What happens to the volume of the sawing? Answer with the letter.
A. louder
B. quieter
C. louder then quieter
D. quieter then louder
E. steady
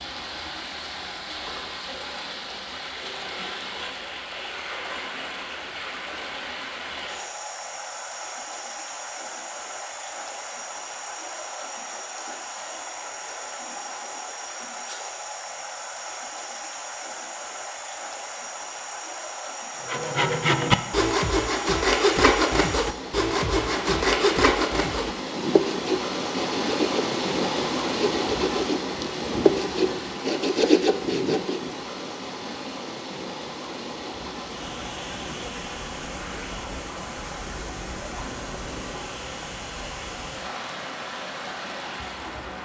D.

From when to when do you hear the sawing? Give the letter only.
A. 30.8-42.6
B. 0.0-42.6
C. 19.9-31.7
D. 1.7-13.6
C.